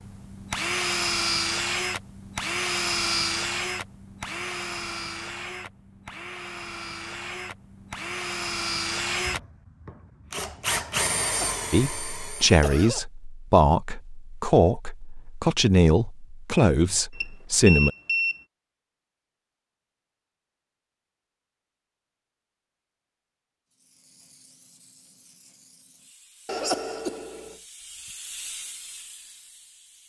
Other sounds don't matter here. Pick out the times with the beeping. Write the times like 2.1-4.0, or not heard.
17.1-18.4.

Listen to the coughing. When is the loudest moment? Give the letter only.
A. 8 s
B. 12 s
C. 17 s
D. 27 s
D.